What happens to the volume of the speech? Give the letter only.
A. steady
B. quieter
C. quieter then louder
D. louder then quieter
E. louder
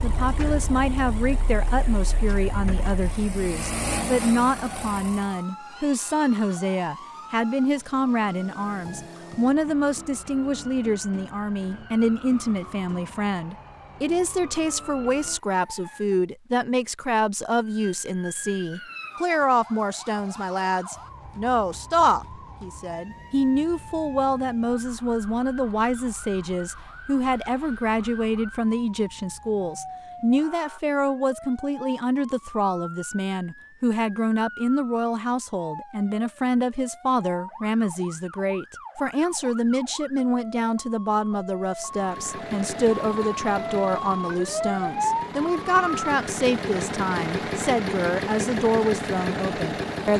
A.